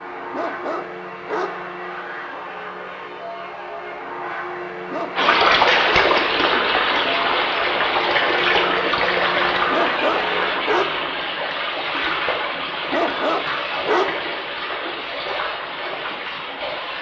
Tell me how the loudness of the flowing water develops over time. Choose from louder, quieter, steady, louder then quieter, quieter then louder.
quieter.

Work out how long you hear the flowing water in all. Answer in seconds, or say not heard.
12 s.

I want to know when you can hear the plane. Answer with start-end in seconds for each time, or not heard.
0.0-10.6.